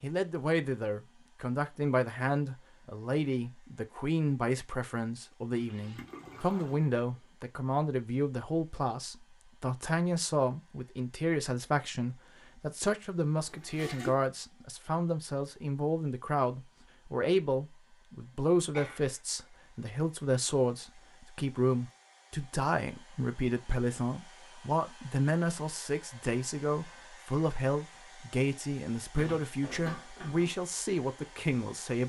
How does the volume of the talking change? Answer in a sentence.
The volume of the talking stays about the same.